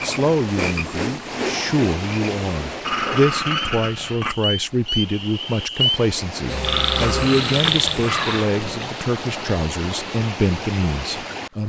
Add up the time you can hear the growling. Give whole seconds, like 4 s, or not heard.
4 s.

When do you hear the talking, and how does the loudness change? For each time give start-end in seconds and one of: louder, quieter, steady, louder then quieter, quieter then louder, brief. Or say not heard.
0.0-11.6 steady.